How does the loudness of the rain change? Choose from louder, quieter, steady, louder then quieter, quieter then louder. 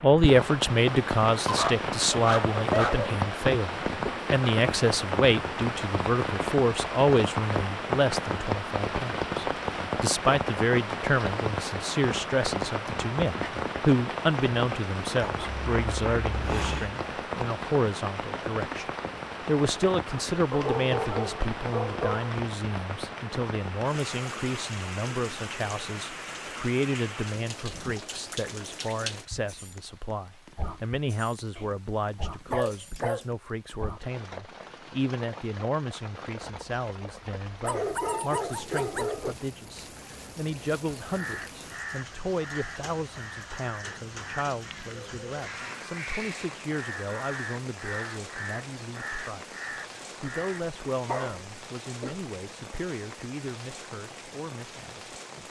quieter.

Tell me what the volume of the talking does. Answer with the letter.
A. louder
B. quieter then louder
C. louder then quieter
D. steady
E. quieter
E.